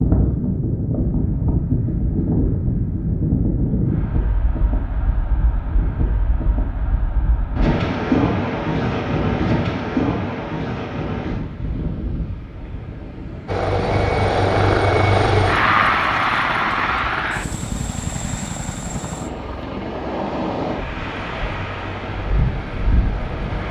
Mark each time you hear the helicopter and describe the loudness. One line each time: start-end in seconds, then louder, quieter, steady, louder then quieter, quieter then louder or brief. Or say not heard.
13.4-23.6 quieter.